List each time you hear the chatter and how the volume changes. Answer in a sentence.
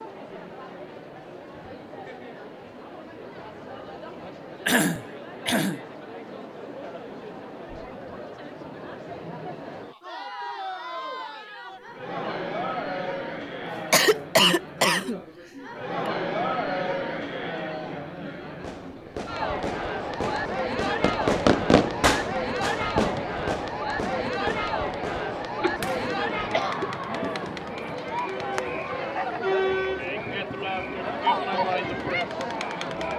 You can hear the chatter from 0.0 to 33.1 s, getting louder.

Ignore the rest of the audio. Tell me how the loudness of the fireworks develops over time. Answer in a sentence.
The volume of the fireworks goes up, then down.